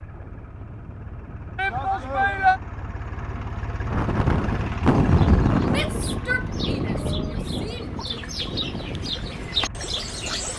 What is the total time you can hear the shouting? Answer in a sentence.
The shouting can be heard for 4 seconds in total.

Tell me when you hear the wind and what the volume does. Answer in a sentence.
The wind can be heard from 0.0 to 10.5 s, getting louder then quieter.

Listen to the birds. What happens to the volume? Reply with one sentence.
The loudness of the birds goes up.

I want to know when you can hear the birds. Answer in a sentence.
You can hear the birds from 5.1 to 10.5 s.